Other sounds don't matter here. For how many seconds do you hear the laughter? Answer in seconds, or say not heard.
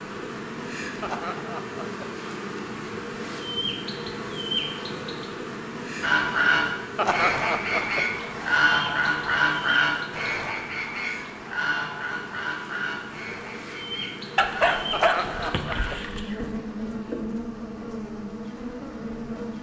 3 s.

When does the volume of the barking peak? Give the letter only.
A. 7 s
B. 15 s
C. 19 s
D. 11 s
B.